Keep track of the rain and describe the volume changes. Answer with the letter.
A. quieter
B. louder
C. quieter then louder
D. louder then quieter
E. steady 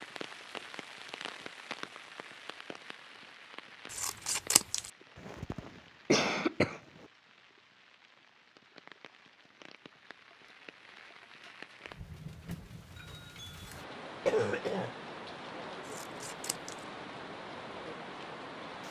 C.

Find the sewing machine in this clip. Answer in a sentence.
The sewing machine can't be heard in this clip.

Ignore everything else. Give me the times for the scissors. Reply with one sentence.
You can hear the scissors from 3.9 to 4.9 s and from 15.8 to 16.9 s.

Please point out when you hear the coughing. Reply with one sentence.
The coughing can be heard from 5.2 to 6.8 s and from 14.2 to 14.9 s.